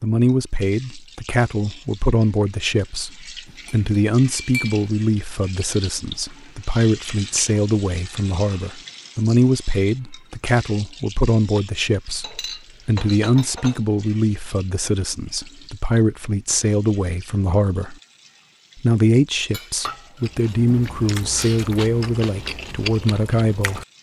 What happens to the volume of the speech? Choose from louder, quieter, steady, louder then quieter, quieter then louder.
steady.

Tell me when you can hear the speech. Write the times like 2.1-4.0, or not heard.
0.0-17.9, 18.8-23.8.